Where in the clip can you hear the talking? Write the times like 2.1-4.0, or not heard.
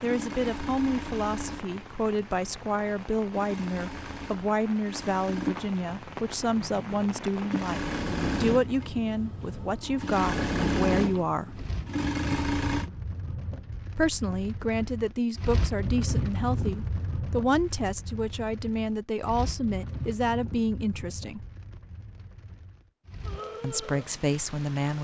0.0-11.7, 13.9-21.4, 23.6-24.9.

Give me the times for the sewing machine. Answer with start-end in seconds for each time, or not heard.
0.0-12.9.